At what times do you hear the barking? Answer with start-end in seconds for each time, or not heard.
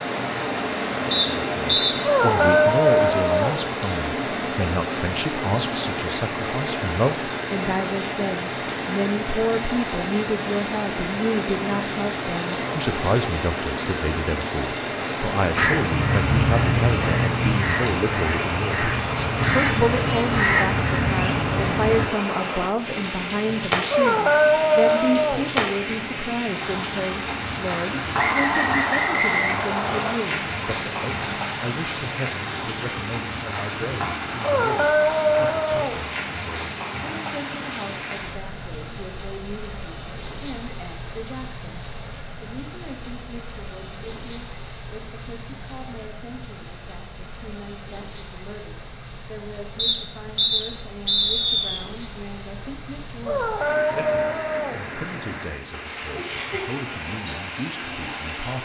2.0-3.6, 23.9-25.5, 34.4-36.0, 53.2-54.9.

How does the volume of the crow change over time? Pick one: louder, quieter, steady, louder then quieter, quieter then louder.
quieter then louder.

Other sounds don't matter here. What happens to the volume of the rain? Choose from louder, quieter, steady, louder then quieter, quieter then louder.
quieter.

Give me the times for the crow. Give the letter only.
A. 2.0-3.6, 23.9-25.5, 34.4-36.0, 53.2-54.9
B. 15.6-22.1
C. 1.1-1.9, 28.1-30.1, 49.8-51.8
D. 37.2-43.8
B.